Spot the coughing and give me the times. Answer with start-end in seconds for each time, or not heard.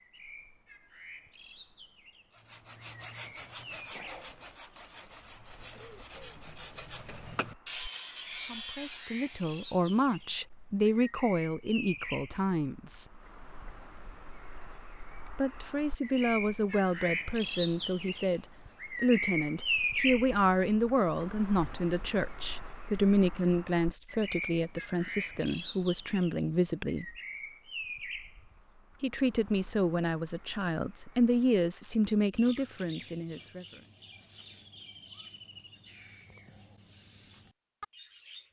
5.7-6.4.